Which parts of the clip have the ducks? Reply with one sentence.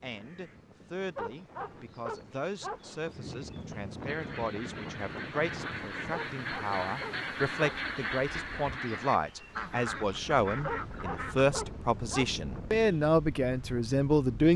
You can hear the ducks from 4.0 to 11.6 s.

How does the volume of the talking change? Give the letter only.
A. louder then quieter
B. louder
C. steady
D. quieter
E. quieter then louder
B.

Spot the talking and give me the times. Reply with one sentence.
The talking can be heard from 0.0 to 14.5 s.